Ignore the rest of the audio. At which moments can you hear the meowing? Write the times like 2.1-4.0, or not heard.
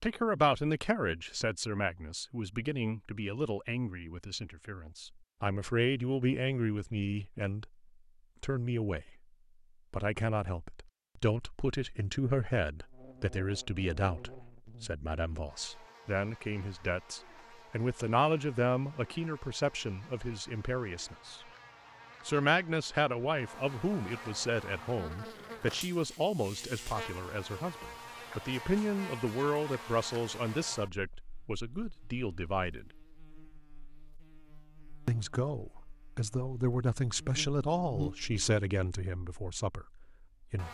not heard.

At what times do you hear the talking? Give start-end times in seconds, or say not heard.
0.0-7.7, 8.4-9.2, 9.9-21.4, 22.2-32.9, 35.0-40.6.